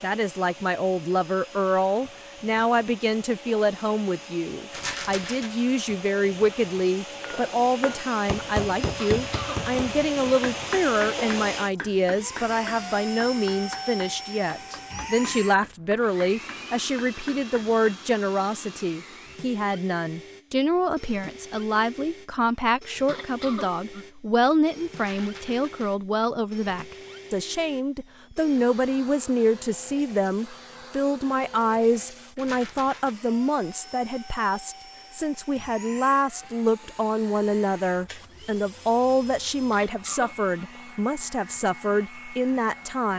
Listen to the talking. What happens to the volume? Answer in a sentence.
The loudness of the talking stays about the same.